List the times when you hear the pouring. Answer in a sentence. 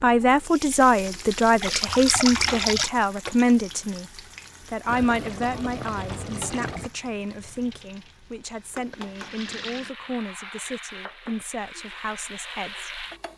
The pouring can be heard from 1.6 to 2.9 s, from 4.8 to 6.9 s and from 8.9 to 9.9 s.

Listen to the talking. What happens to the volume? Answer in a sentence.
The volume of the talking goes down.